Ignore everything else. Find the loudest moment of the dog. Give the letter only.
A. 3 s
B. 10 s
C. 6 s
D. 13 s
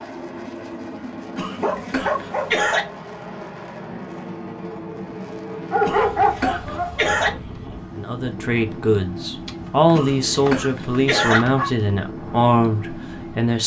C.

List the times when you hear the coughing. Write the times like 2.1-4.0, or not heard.
1.4-2.9, 5.8-7.3, 9.9-11.4.